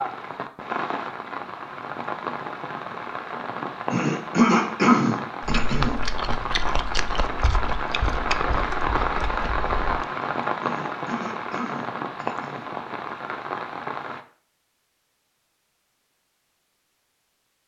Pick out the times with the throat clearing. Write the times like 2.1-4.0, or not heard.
3.9-6.0, 10.6-12.7.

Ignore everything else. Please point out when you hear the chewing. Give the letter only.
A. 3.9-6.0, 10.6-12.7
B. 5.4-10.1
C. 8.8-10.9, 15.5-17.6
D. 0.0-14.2
B.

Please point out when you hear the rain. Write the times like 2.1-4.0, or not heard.
0.0-14.2.